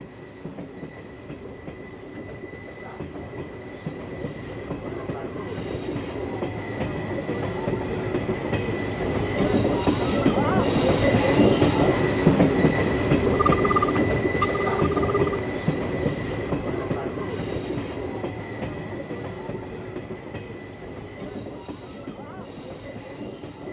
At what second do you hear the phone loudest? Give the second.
14 s.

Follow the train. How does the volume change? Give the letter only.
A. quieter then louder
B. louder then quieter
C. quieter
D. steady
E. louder
B.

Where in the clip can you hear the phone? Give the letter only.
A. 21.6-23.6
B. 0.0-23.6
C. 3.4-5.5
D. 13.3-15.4
D.